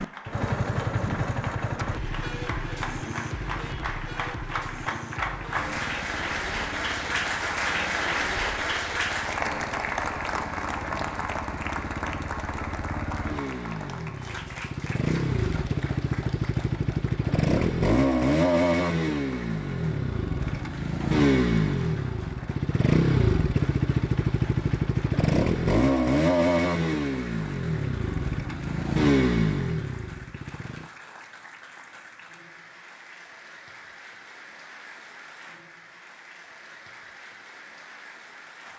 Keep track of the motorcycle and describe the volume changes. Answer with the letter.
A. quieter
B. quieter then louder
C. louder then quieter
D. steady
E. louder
B.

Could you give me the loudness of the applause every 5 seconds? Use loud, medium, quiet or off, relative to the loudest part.
medium, loud, medium, quiet, quiet, quiet, quiet, quiet.